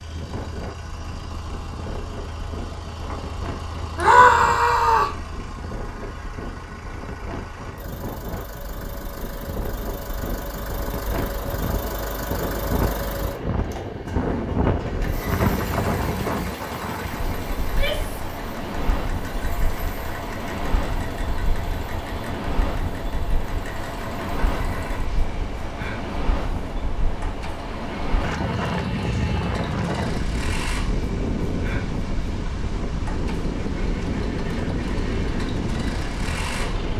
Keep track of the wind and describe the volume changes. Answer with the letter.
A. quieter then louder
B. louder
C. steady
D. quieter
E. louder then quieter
B.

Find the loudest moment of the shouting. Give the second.
4 s.